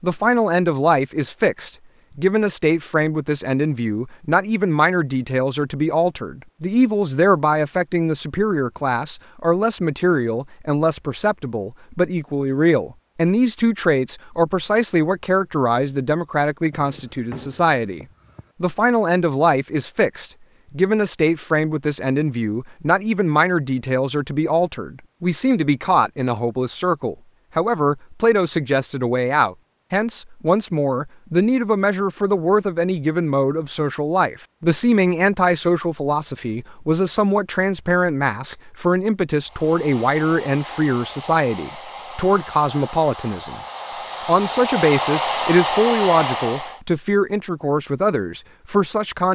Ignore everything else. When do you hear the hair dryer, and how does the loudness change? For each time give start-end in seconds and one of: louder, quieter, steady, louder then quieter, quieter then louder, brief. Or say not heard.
39.4-46.8 louder.